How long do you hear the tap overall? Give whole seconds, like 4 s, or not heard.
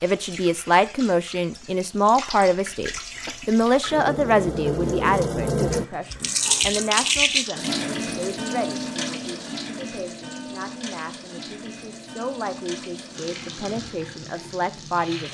15 s.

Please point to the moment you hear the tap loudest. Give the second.
7 s.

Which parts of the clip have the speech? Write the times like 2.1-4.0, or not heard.
0.0-15.2.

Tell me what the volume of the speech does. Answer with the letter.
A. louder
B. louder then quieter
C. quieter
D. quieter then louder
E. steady
D.